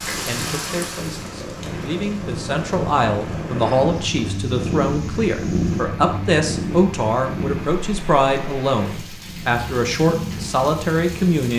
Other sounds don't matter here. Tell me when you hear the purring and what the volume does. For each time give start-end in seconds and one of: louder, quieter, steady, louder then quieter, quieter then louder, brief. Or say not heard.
0.0-11.4 louder then quieter.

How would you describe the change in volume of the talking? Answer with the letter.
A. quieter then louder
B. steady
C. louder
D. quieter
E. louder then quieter
C.